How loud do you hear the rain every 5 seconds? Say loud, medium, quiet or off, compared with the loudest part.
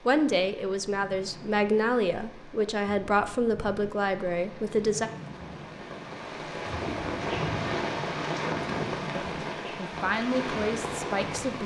quiet, loud, loud.